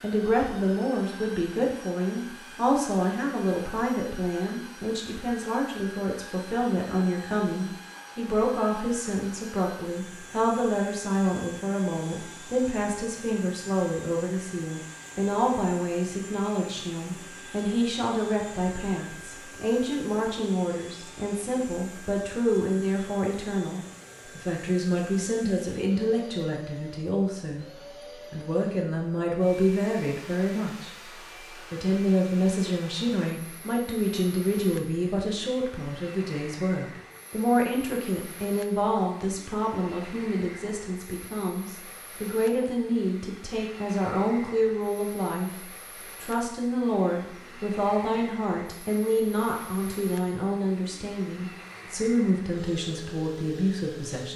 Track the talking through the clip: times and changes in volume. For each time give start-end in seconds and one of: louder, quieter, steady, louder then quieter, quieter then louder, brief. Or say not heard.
0.0-27.6 steady
28.3-30.9 brief
31.7-54.3 steady.